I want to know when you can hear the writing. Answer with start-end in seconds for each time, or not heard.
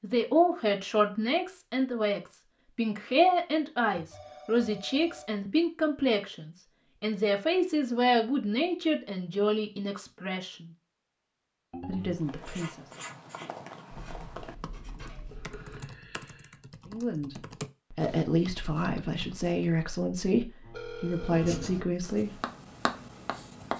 12.2-15.9, 21.1-23.7.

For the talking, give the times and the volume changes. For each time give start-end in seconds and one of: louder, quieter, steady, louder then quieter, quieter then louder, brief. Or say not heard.
0.0-10.7 steady
11.8-12.8 brief
16.9-22.4 steady.